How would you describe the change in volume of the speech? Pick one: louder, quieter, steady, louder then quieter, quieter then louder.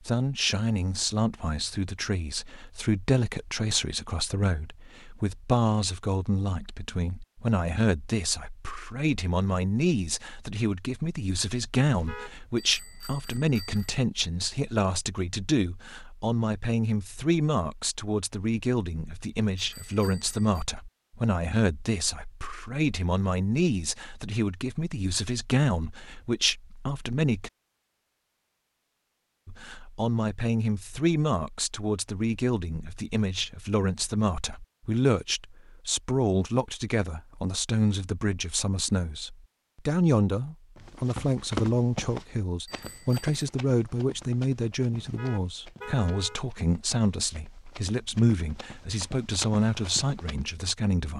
steady.